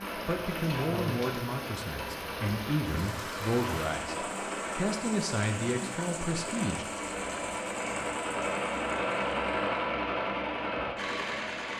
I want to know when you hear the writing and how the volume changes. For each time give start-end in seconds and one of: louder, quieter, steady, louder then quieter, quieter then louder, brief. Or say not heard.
not heard.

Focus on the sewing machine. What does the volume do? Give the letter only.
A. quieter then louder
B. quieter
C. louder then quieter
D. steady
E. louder
E.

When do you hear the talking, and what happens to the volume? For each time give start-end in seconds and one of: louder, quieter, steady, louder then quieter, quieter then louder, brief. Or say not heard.
0.1-6.8 steady.